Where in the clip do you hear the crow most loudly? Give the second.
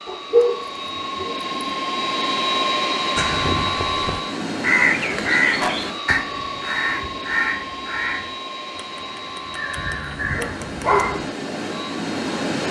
5 s.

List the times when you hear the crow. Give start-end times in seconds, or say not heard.
3.1-11.1.